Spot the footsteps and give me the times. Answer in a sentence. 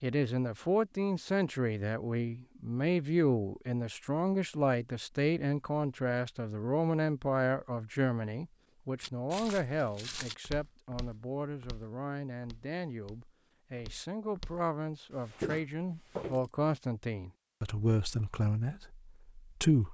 You can hear the footsteps from 9.0 to 14.6 s and from 15.2 to 16.4 s.